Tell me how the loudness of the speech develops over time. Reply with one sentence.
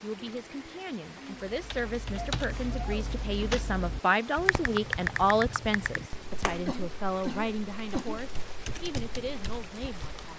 The volume of the speech goes up, then down.